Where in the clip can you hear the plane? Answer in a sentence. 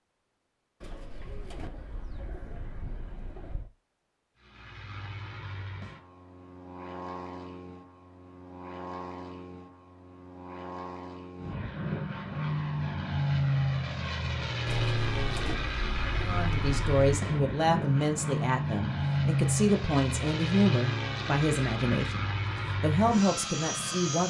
You can hear the plane from 4.3 to 24.2 s.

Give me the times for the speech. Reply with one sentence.
You can hear the speech from 16.2 to 24.2 s.